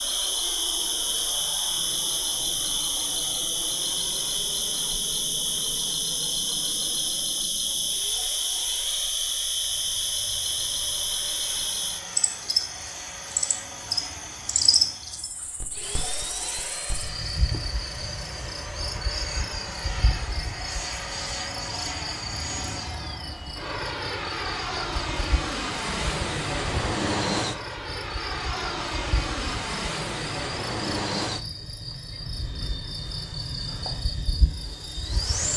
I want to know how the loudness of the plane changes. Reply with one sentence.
The volume of the plane goes up.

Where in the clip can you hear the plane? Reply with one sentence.
The plane can be heard from 0.0 to 35.5 s.